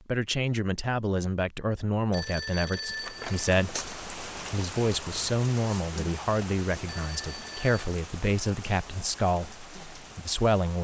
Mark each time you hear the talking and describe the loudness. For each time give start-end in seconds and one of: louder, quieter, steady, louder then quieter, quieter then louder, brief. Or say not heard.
0.1-10.7 steady.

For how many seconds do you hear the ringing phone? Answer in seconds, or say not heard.
2 s.